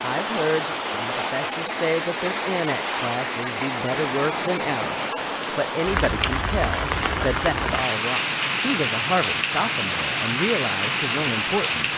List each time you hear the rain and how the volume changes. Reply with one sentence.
You can hear the rain from 0.0 to 11.9 s, at a steady volume.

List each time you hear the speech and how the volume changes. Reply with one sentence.
The speech can be heard from 0.0 to 11.9 s, at a steady volume.